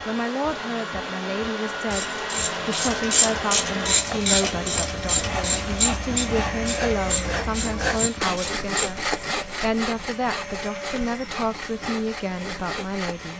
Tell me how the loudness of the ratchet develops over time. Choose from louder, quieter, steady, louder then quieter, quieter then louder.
quieter.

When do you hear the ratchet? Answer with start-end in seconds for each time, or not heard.
1.9-9.1.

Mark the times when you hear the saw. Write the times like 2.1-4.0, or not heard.
3.9-13.3.